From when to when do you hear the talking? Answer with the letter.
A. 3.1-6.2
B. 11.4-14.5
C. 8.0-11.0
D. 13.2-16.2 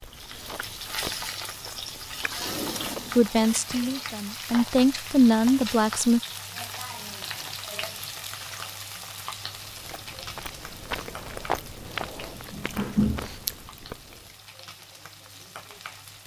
A.